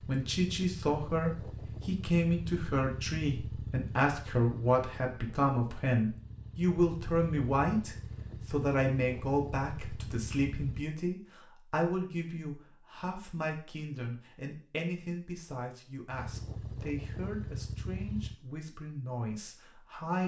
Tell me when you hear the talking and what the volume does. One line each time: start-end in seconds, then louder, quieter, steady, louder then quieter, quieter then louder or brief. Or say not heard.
0.0-20.2 quieter.